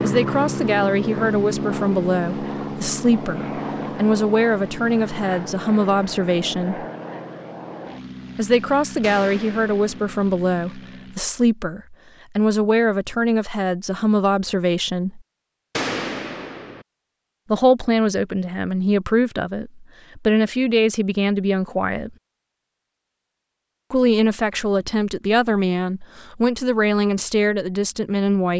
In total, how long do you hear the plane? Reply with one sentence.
You can hear the plane for 11 seconds altogether.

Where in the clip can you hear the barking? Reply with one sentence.
You can't hear the barking here.